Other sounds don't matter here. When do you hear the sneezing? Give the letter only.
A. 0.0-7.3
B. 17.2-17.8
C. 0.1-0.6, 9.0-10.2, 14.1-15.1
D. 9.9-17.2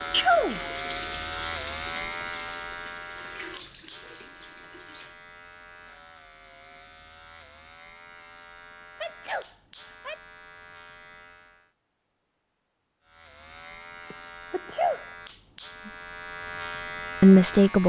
C.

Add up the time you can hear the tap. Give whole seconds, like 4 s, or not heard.
7 s.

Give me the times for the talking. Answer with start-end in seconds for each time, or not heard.
17.2-17.8.